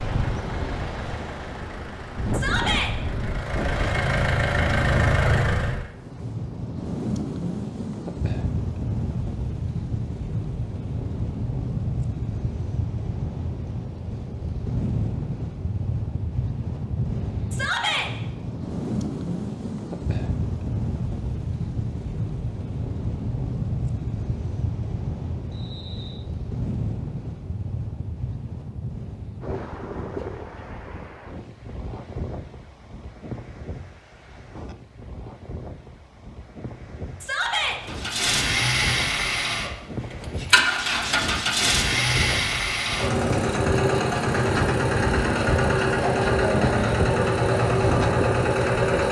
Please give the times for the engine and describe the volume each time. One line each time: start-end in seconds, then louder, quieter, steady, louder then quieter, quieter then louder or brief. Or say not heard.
0.0-5.9 louder
37.9-49.0 steady.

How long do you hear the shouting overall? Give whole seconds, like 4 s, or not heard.
2 s.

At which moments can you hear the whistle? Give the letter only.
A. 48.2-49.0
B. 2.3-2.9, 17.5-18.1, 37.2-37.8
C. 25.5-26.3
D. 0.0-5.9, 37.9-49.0
C.